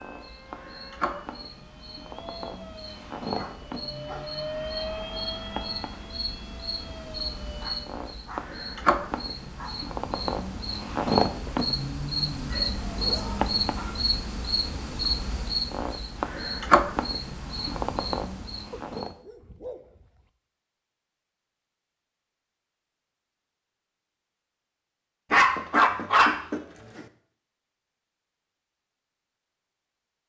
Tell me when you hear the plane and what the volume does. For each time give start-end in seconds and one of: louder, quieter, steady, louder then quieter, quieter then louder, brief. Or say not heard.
0.0-7.8 louder then quieter.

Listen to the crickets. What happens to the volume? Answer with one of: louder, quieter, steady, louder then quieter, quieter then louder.
louder.